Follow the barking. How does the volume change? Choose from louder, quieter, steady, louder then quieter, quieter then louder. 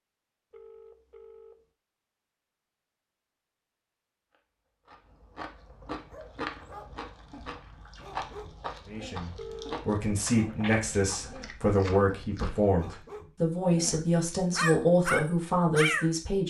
louder.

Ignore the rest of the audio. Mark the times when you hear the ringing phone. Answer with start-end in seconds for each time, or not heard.
0.5-1.7, 9.3-9.8.